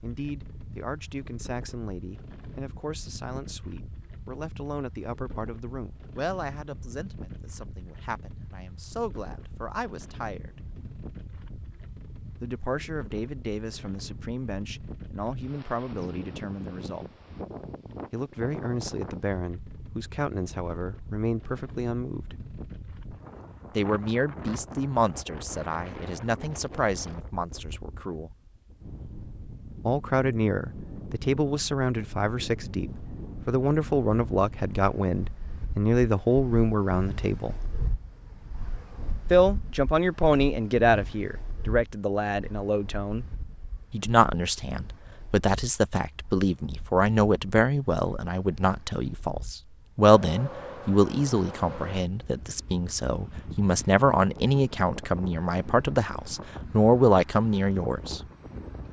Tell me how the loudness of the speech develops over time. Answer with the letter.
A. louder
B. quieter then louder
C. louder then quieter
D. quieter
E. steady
A.